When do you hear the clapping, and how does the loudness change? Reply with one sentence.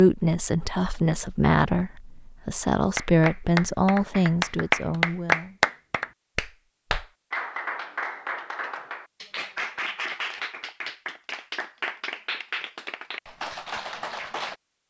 The clapping can be heard from 3.0 to 14.6 s, getting quieter.